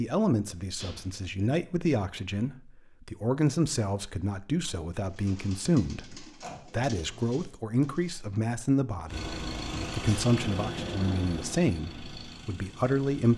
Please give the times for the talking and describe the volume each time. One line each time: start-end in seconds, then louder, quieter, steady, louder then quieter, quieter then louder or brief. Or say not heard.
0.0-13.3 steady.